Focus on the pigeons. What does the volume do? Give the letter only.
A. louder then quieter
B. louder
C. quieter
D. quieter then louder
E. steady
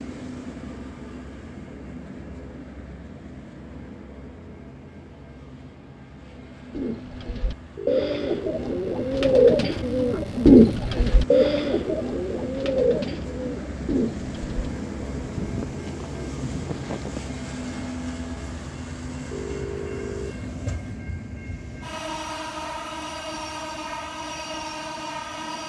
A.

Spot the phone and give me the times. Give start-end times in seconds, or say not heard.
7.8-8.2, 19.3-20.4.